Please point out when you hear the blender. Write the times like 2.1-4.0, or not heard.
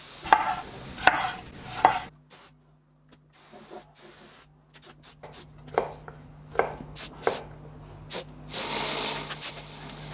8.5-10.0.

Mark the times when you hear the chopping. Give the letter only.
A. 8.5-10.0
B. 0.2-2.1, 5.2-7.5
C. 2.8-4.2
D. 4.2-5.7
B.